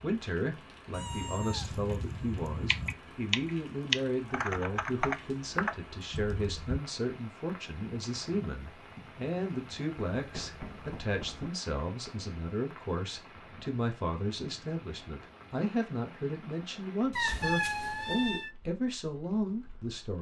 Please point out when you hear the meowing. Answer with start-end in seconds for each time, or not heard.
0.9-3.0, 10.2-11.5, 17.1-18.5.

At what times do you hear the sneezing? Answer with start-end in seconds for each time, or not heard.
not heard.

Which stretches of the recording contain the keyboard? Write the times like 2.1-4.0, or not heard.
2.6-6.8.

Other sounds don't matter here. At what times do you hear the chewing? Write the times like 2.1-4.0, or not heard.
not heard.